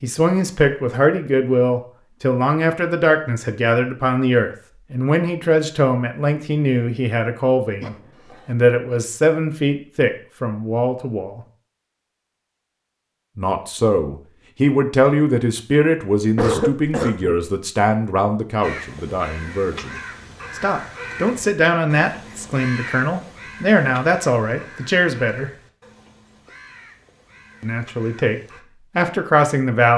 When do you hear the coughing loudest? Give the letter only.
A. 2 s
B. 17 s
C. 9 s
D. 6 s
B.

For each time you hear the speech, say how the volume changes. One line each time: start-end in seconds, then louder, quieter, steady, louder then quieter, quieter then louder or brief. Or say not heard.
0.0-11.4 steady
13.3-25.5 quieter then louder
27.6-29.9 brief.